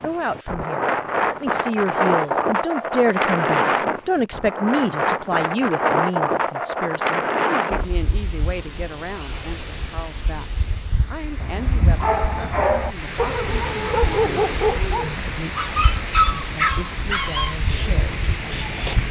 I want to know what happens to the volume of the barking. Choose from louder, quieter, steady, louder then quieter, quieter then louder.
quieter.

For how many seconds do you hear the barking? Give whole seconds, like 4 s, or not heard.
8 s.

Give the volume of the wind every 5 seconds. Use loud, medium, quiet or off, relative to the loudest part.
loud, loud, medium, medium.